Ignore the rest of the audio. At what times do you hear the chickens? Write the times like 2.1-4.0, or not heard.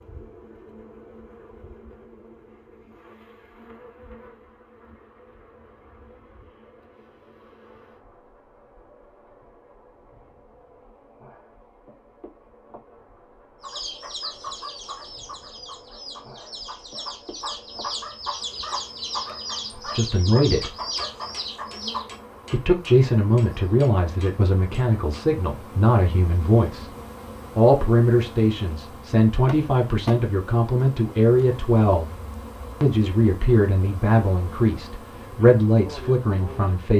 13.6-22.1.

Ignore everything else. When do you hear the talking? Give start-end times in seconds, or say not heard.
19.8-20.8, 22.5-26.9, 27.6-32.1, 32.8-36.9.